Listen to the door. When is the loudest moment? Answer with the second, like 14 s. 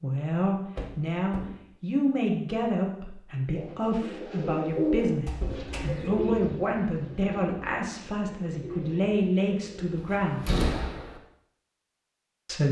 11 s.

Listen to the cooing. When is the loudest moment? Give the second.
5 s.